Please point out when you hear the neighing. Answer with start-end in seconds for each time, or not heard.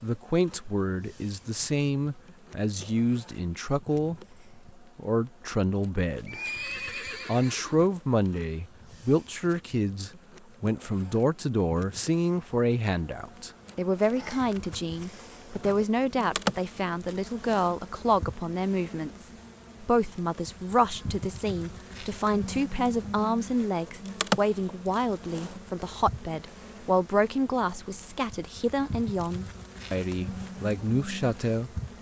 6.2-8.0.